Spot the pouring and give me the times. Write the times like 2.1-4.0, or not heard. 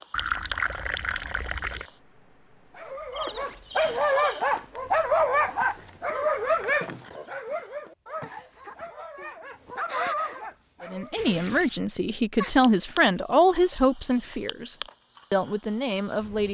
0.1-1.9, 11.2-11.8.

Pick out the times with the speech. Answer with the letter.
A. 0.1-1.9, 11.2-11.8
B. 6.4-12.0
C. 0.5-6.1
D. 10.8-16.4
D.